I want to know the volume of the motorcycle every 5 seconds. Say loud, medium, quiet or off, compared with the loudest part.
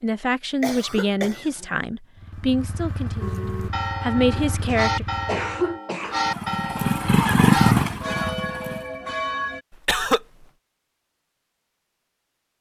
quiet, loud, off.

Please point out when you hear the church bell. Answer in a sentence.
You can hear the church bell from 3.2 to 9.6 s.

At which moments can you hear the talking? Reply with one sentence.
The talking can be heard from 0.0 to 5.0 s.